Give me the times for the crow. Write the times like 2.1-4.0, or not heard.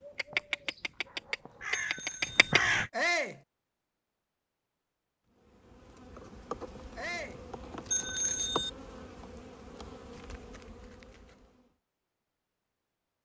0.0-2.9.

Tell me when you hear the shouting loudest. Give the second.
3 s.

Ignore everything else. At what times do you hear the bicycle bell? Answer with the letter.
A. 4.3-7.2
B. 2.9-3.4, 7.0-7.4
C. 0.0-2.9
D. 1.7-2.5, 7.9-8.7
D.